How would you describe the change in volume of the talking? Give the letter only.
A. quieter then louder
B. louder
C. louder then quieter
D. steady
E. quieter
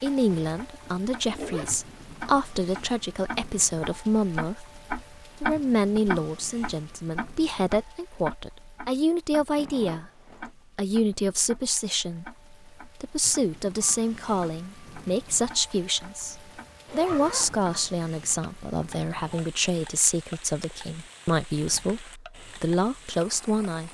D.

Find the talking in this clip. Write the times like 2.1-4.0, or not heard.
0.0-10.1, 10.8-23.8.